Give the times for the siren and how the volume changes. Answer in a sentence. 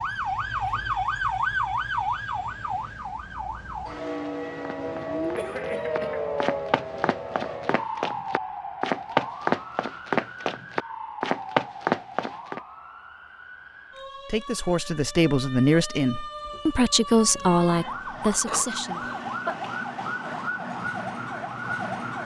You can hear the siren from 0.0 to 22.2 s, getting quieter then louder.